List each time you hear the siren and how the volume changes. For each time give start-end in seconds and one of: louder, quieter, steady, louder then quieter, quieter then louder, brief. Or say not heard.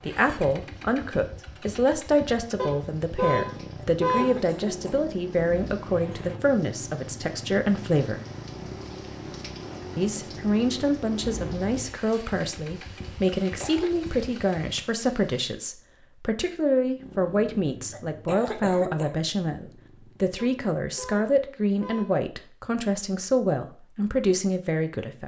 not heard.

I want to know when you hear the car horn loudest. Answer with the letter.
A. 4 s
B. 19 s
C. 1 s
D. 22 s
A.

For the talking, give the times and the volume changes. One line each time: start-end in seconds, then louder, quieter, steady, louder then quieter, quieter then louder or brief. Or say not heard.
0.0-8.2 steady
9.9-25.2 steady.